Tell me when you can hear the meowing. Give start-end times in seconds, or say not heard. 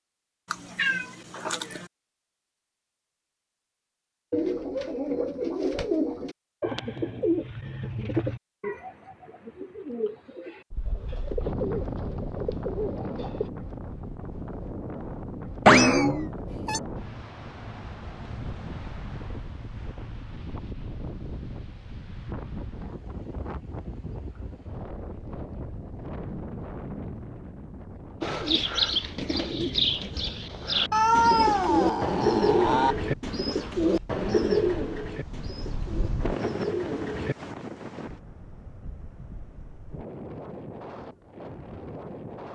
0.5-1.9, 15.7-16.8, 30.9-33.0.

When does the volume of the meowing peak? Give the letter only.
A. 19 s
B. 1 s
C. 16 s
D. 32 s
C.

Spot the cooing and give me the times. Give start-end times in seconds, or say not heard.
4.3-13.5, 28.2-37.4.